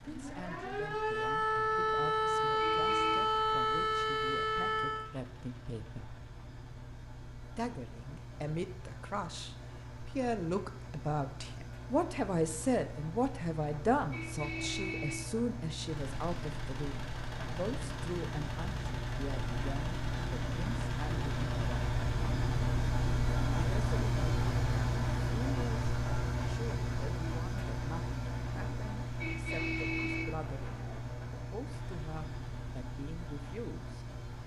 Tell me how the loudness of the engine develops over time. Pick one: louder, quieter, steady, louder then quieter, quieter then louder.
louder then quieter.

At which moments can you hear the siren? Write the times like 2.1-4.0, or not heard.
0.0-5.0.